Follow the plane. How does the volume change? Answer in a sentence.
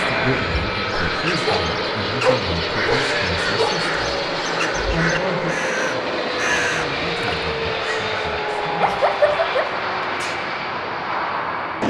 The loudness of the plane stays about the same.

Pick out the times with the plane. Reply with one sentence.
The plane can be heard from 0.0 to 11.8 s.